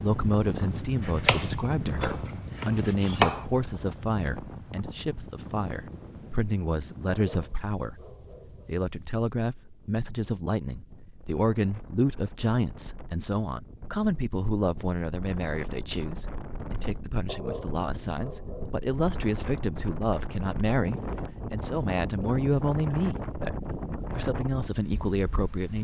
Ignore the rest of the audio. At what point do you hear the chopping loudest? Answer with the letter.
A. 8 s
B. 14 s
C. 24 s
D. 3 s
D.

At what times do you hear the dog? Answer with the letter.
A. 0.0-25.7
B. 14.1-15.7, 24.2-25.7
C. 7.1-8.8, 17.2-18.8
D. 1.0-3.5
C.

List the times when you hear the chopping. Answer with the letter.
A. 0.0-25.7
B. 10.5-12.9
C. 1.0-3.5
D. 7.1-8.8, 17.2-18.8
C.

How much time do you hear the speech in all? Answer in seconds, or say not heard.
26 s.